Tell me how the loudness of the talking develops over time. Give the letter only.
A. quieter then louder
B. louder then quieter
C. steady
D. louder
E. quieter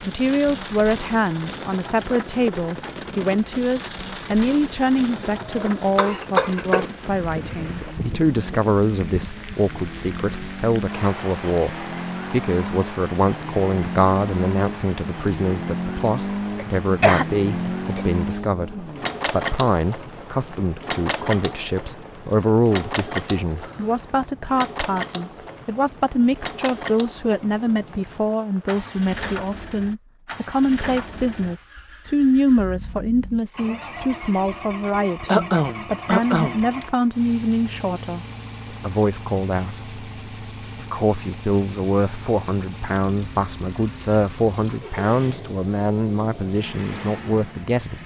C.